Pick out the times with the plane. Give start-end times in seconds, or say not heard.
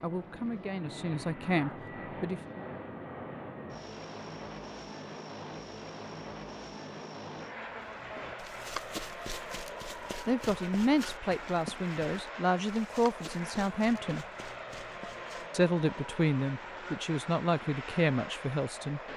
0.0-19.1.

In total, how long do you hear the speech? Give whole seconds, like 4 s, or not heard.
10 s.